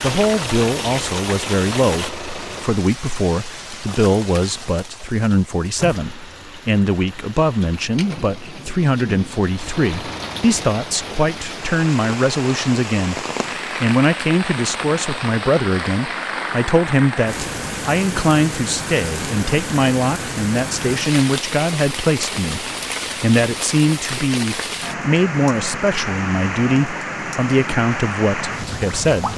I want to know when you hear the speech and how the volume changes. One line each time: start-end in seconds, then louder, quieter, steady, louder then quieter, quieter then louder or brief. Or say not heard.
0.0-29.3 steady.